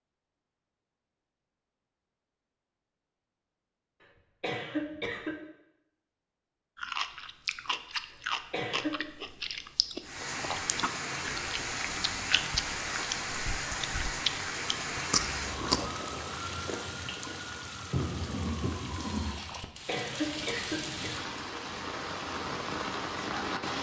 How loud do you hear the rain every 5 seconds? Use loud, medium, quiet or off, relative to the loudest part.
off, off, loud, loud, loud.